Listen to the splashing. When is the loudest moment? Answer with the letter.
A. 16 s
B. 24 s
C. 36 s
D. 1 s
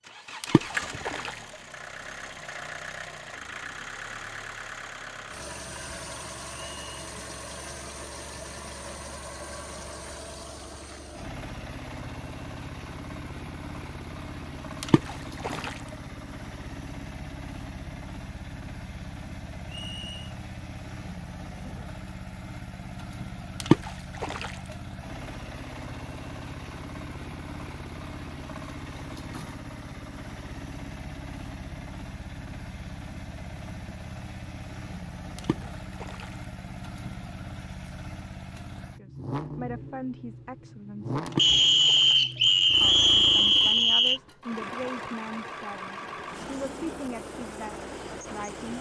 B.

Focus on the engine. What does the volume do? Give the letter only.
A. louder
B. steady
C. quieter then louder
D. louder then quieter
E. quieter
B.